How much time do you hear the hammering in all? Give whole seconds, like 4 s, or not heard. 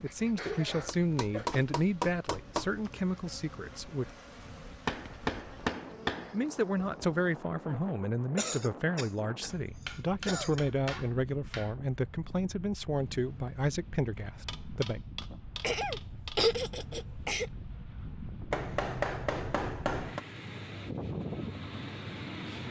9 s.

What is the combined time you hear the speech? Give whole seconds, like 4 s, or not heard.
13 s.